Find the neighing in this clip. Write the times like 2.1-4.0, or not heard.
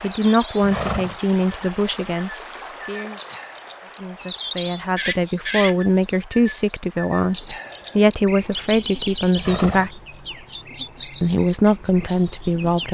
0.6-1.1, 5.0-5.8, 9.3-9.9.